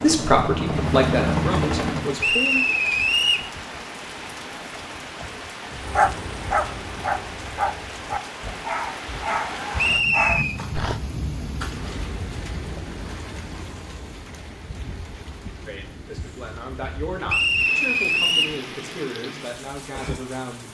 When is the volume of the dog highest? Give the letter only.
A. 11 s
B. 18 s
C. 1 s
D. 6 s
D.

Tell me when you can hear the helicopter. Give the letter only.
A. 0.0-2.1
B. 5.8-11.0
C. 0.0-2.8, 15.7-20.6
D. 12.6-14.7
A.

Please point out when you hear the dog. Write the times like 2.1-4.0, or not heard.
5.8-11.0.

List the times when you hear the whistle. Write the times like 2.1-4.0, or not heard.
2.2-3.5, 9.8-10.6, 17.2-18.6.